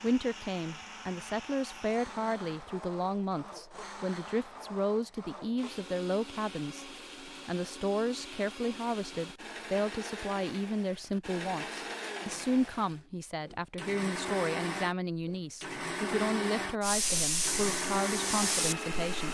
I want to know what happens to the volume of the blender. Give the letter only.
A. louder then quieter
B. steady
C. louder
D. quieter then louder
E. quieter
C.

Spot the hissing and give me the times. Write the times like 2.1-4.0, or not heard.
16.8-19.2.